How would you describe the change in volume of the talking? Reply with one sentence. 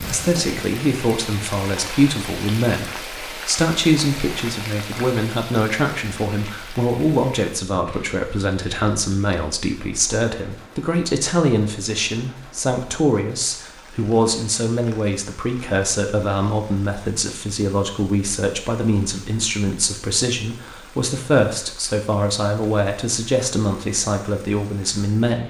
The loudness of the talking stays about the same.